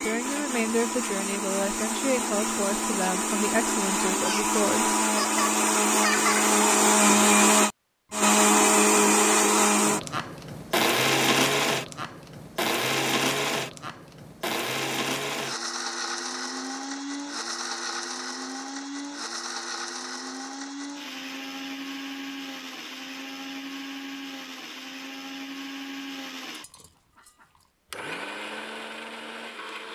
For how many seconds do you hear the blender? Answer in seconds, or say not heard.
30 s.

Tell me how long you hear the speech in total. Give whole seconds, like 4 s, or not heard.
5 s.